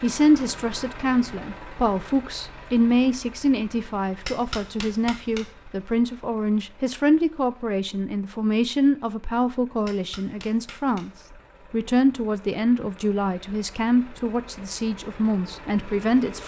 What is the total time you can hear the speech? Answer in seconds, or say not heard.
16 s.